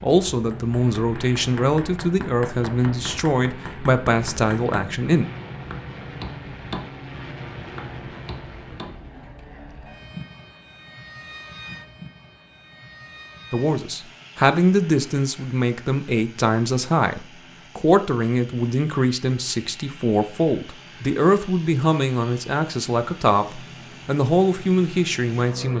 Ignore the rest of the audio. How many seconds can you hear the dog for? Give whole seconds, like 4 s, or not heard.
not heard.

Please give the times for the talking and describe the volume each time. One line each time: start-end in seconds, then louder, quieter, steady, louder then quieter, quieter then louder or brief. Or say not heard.
0.0-5.2 steady
13.5-25.7 steady.